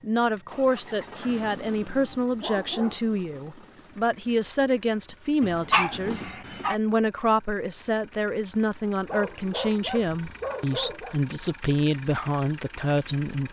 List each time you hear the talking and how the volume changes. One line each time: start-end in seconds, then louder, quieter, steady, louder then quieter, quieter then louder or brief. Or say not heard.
0.0-13.4 steady.